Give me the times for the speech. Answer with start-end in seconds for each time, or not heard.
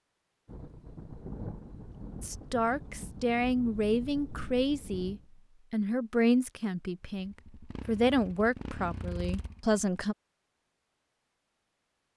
2.2-10.2.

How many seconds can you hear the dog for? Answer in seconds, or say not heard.
not heard.